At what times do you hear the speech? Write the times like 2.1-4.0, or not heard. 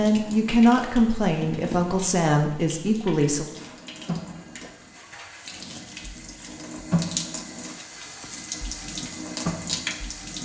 0.0-3.5.